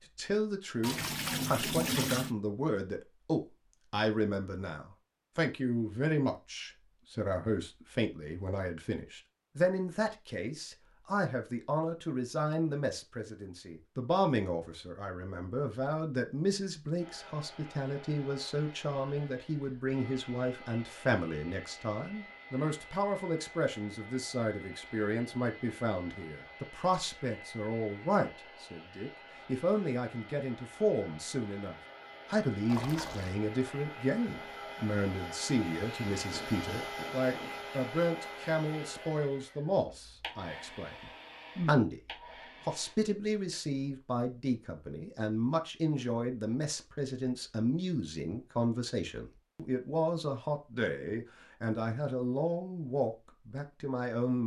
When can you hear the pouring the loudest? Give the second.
2 s.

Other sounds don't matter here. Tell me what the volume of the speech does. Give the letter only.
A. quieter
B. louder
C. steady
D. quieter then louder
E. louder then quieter
C.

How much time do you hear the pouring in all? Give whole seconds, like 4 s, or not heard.
2 s.